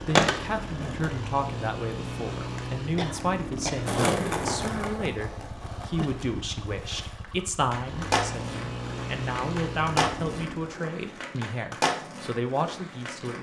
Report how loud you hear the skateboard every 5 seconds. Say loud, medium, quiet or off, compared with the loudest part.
loud, medium, medium.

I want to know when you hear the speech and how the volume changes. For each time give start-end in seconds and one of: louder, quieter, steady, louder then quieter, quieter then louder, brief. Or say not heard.
0.0-13.3 steady.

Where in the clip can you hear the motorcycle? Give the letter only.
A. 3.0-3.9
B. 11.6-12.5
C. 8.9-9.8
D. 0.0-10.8
D.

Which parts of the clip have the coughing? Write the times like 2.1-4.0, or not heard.
3.0-3.9.